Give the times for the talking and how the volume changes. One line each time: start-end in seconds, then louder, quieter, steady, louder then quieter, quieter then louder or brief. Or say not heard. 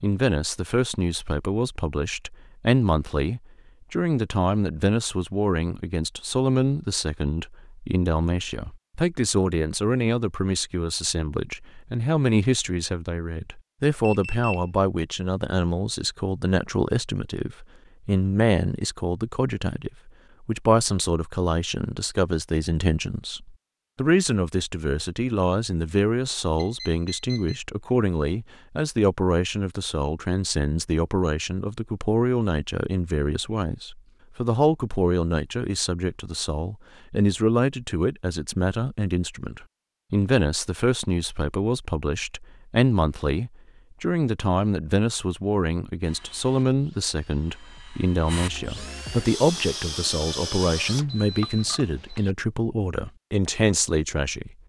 0.0-54.5 steady.